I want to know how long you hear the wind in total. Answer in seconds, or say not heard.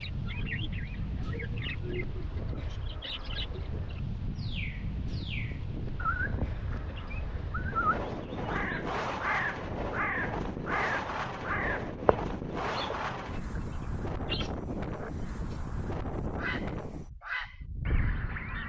18 s.